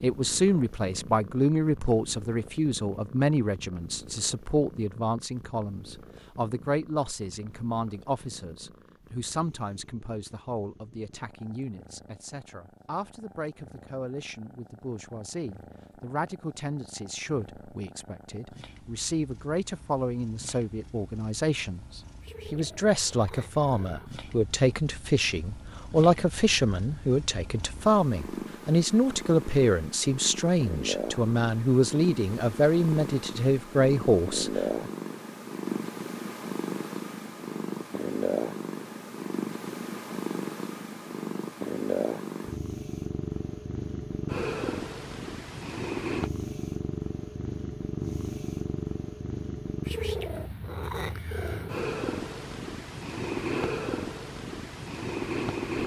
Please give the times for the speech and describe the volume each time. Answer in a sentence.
The speech can be heard from 0.0 to 34.9 s, getting quieter then louder.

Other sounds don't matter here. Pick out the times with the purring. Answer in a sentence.
The purring can be heard from 0.0 to 55.8 s.